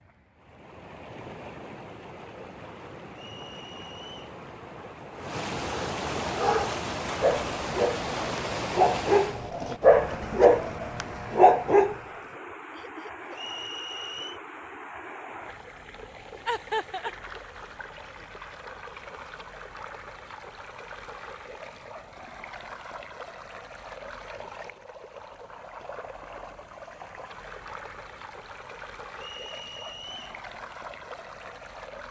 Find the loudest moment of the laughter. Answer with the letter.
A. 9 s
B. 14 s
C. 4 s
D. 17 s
D.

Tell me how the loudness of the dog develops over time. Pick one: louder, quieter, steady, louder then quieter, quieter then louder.
louder.